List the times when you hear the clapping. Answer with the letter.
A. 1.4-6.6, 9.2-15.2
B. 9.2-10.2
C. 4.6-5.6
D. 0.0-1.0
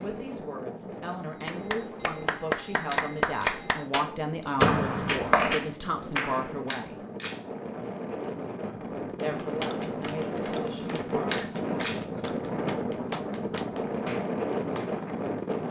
A.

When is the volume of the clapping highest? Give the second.
3 s.